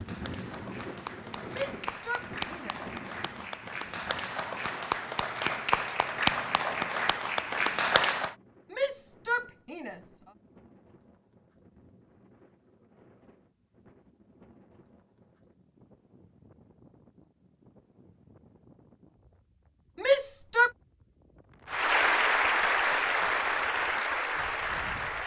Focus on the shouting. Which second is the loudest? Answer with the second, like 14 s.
20 s.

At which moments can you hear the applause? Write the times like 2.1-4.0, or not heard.
0.0-8.3, 21.7-25.2.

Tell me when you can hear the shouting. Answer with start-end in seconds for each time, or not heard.
1.5-2.8, 8.7-10.0, 19.9-20.7.